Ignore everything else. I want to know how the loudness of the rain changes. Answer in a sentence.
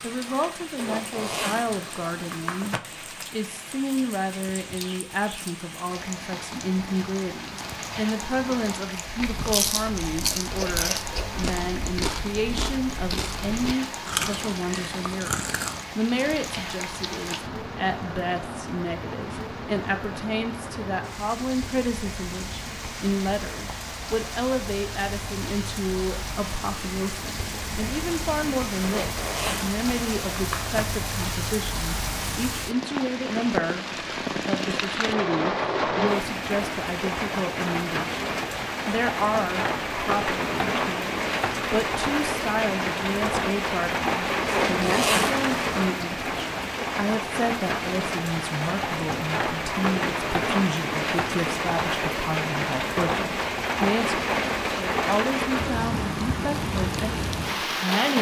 The loudness of the rain goes up.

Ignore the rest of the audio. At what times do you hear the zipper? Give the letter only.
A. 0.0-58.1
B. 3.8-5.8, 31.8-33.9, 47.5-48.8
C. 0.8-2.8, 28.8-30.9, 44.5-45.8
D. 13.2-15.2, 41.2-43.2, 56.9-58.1
C.